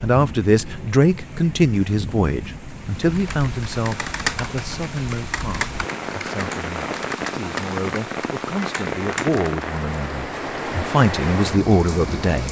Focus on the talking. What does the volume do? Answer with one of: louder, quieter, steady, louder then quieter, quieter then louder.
quieter then louder.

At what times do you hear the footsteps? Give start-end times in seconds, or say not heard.
not heard.